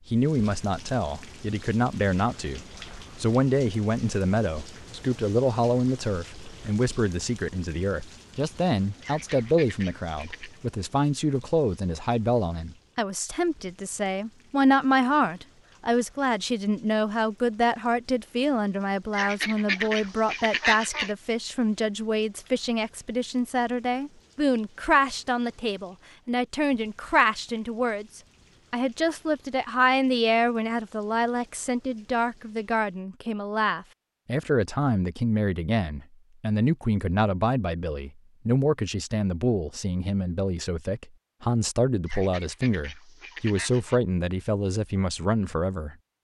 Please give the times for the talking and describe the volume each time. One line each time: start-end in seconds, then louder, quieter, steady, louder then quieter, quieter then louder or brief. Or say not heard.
0.1-46.0 steady.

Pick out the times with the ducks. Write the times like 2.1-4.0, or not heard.
9.0-10.6, 19.1-21.1, 42.0-44.0.